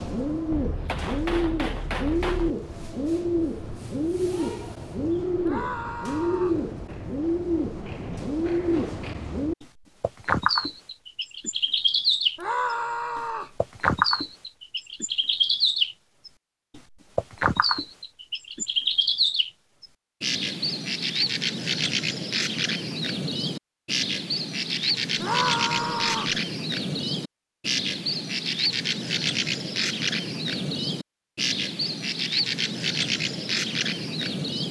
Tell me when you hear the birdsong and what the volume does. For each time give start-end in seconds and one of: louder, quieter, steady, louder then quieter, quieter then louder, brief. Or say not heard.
0.0-34.6 steady.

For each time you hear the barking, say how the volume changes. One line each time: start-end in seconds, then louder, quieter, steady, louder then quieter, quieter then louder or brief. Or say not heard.
not heard.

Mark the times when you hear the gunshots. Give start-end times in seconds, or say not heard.
0.5-2.5.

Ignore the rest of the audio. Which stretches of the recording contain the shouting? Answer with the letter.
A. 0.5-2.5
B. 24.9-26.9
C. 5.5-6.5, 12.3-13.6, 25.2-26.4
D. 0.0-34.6
C.